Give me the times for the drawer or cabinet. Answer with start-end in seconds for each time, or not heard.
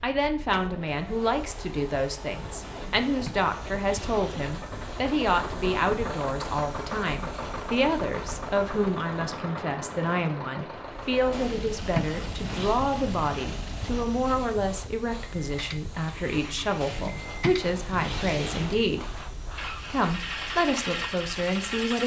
2.6-4.5, 11.3-12.8, 16.8-18.8.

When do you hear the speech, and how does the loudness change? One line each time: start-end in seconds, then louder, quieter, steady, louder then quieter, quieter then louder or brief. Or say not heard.
0.0-22.0 steady.